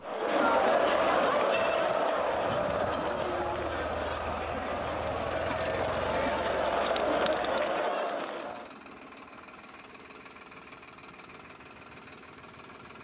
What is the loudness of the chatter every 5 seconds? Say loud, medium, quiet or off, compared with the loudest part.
loud, loud, off.